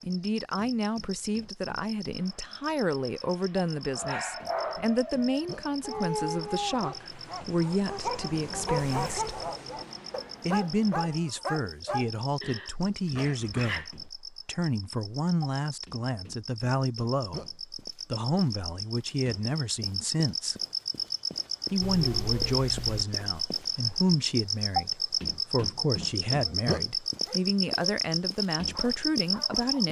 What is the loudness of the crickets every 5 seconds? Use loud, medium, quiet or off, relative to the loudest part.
quiet, quiet, quiet, medium, loud, loud.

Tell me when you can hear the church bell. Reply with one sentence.
You can't hear the church bell here.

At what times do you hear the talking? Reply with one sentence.
The talking can be heard from 0.0 to 9.3 s, from 10.4 to 20.6 s and from 21.7 to 29.8 s.